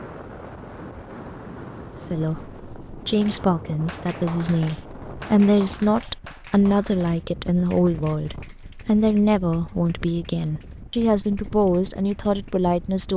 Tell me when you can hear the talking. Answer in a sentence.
You can hear the talking from 2.1 to 13.1 s.